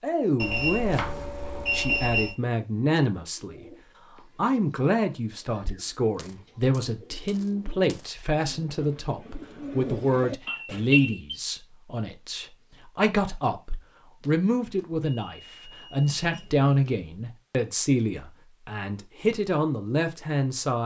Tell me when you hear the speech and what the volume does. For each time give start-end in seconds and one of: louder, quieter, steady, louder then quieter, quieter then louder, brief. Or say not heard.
0.0-20.8 steady.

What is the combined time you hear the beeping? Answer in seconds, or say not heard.
5 s.